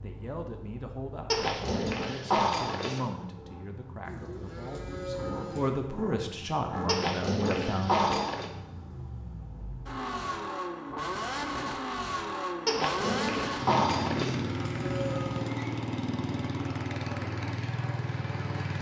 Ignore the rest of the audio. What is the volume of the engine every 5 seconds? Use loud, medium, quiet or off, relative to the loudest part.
quiet, medium, loud, loud.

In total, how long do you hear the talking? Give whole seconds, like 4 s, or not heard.
8 s.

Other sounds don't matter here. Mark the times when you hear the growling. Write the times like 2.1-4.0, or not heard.
1.3-3.0, 6.8-8.5, 12.7-14.4.